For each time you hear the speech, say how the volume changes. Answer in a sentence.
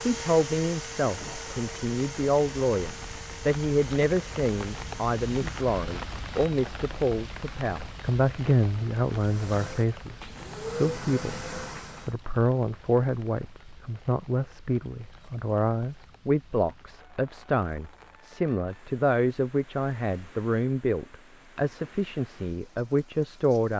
The speech can be heard from 0.1 to 23.7 s, at a steady volume.